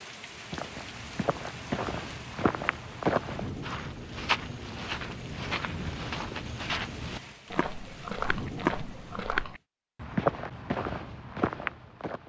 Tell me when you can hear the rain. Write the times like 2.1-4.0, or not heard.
0.0-9.6.